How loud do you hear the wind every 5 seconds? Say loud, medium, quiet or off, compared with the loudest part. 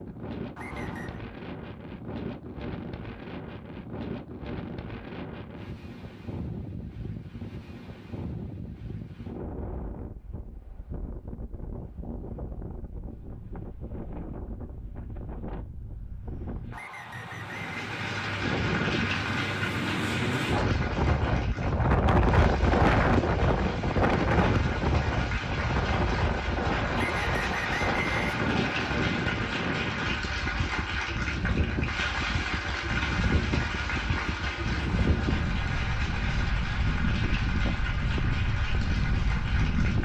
quiet, quiet, quiet, medium, loud, medium, medium, medium.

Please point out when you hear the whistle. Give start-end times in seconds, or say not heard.
0.6-1.2, 16.7-17.9, 26.9-28.9.